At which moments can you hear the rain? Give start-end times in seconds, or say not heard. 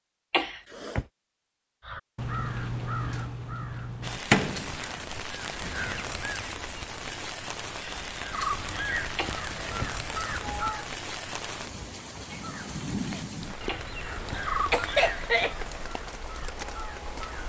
4.0-17.4.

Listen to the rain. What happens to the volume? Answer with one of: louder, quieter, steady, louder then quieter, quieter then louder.
steady.